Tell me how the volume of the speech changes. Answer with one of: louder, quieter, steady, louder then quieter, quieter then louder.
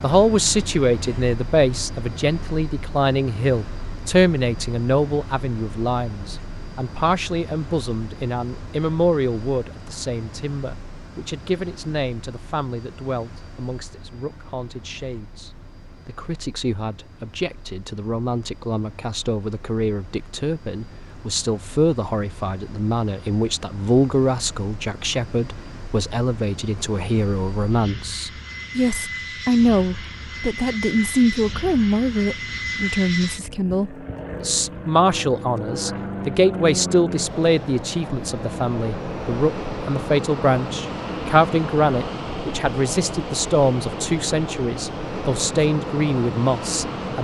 quieter then louder.